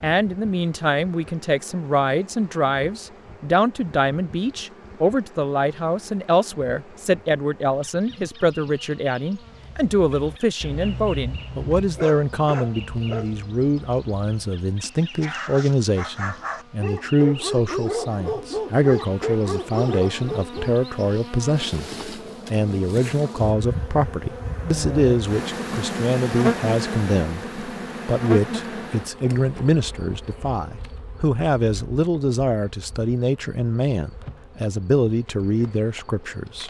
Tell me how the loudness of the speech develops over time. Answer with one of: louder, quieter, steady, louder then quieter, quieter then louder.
steady.